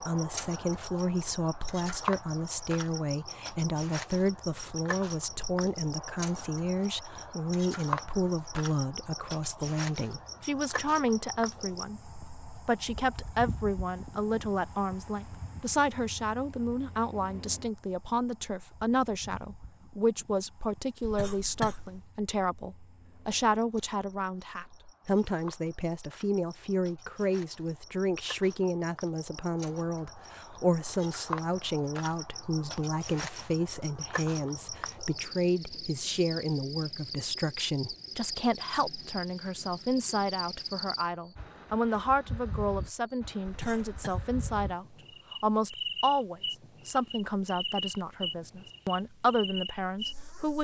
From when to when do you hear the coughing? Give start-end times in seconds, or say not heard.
21.0-21.9, 43.5-44.2.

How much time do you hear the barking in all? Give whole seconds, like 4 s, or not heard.
not heard.